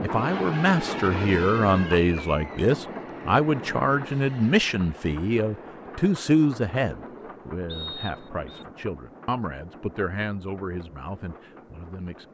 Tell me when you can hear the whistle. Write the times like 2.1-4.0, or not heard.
7.7-8.7.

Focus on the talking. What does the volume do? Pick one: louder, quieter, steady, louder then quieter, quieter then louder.
quieter.